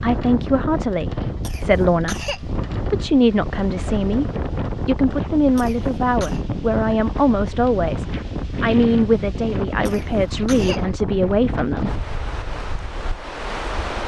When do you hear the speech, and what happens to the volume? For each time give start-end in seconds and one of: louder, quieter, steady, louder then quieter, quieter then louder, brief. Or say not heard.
0.0-12.0 steady.